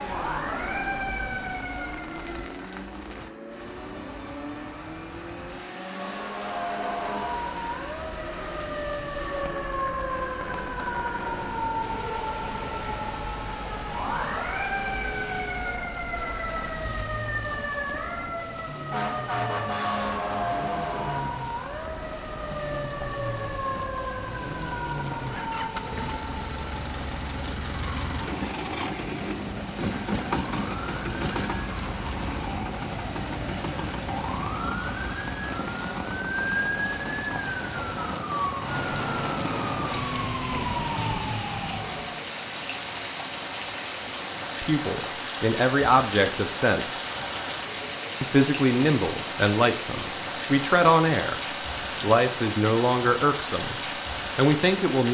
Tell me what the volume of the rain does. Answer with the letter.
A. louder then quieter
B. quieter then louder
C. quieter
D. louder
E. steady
D.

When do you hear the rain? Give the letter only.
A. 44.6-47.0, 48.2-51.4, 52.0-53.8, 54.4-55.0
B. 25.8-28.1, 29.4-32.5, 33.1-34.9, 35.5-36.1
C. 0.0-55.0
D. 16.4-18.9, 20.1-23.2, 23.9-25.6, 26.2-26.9
C.